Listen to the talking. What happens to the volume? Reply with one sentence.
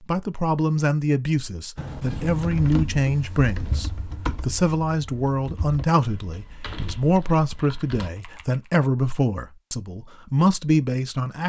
The loudness of the talking stays about the same.